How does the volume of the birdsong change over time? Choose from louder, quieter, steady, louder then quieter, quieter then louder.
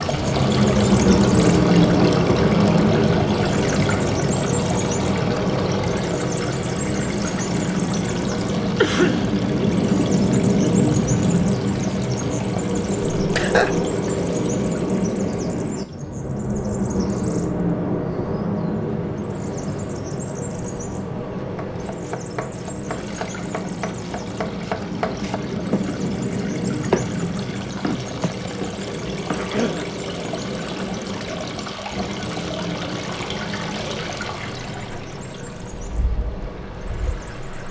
quieter.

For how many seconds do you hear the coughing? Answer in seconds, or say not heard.
2 s.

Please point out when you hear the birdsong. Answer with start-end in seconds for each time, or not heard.
0.0-37.6.